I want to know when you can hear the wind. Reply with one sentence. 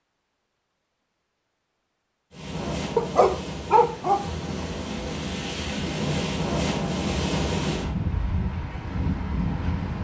The wind can be heard from 2.3 to 9.9 s.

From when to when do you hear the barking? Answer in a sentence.
The barking can be heard from 3.0 to 4.2 s.